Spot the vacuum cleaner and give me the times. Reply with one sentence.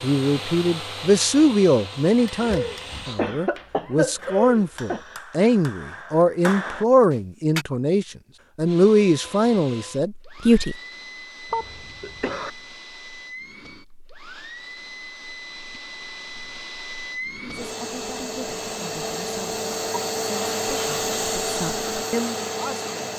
You can hear the vacuum cleaner from 0.0 to 3.2 s and from 8.6 to 23.1 s.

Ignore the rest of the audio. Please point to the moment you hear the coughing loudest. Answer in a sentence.
The volume of the coughing peaks at 4 seconds.